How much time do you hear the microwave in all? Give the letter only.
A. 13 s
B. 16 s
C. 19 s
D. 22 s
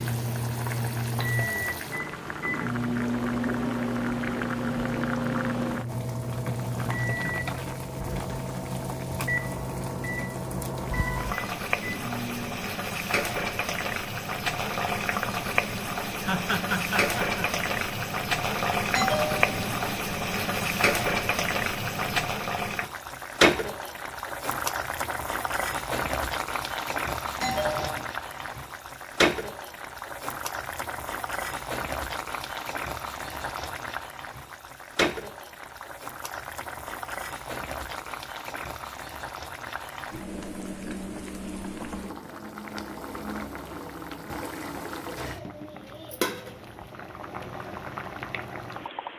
A.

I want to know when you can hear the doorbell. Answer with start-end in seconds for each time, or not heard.
18.9-19.8, 27.4-28.1.